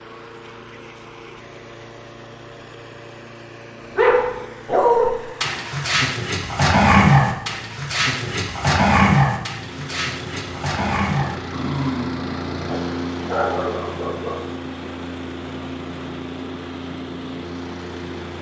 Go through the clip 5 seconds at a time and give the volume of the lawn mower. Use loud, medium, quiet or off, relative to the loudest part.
medium, medium, loud, loud.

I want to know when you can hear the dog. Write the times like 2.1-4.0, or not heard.
4.0-14.4.